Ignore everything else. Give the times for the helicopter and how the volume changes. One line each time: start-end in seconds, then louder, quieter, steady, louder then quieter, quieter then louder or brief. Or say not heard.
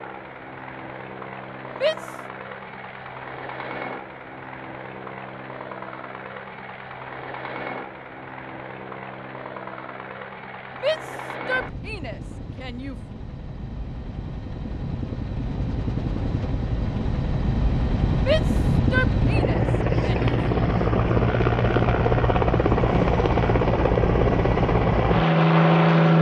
0.0-26.1 louder.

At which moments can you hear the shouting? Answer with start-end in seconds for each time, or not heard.
1.7-2.2, 10.8-12.9, 18.1-20.4.